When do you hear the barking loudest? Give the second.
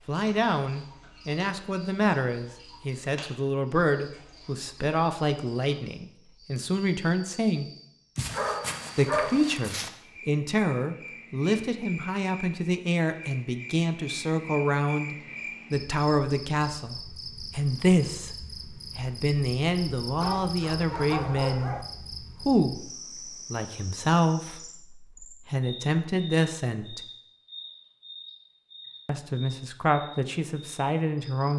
9 s.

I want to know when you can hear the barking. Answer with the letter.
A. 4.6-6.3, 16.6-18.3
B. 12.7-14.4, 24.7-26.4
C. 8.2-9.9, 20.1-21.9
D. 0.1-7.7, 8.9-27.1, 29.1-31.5
C.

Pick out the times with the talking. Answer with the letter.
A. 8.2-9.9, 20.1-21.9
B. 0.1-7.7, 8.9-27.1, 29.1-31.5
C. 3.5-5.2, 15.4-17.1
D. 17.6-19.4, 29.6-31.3
B.